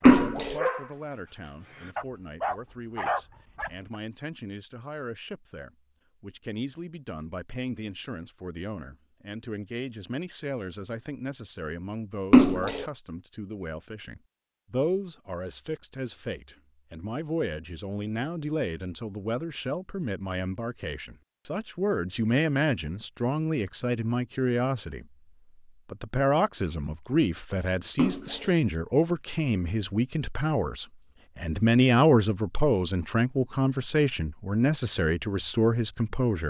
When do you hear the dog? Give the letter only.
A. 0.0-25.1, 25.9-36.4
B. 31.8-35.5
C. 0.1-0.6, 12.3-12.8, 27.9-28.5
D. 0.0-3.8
D.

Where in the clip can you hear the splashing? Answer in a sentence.
You can hear the splashing from 0.1 to 0.6 s, from 12.3 to 12.8 s and from 27.9 to 28.5 s.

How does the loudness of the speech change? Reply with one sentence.
The loudness of the speech goes up.